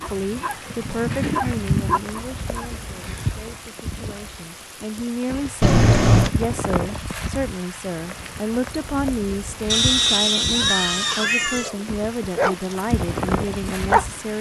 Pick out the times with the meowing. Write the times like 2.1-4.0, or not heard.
1.1-2.0, 5.6-6.3, 9.7-11.7.